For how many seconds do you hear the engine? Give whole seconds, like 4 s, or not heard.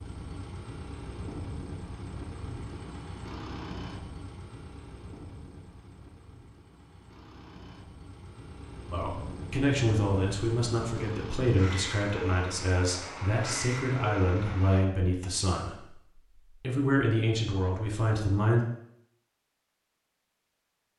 15 s.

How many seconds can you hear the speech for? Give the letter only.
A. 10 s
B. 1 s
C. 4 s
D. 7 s
A.